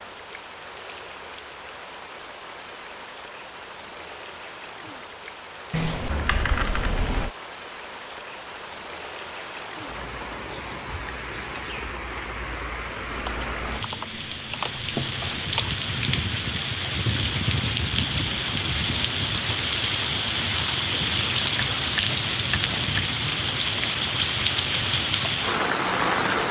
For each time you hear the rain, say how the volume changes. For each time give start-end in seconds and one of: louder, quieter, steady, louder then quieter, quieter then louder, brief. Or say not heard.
0.0-26.4 louder.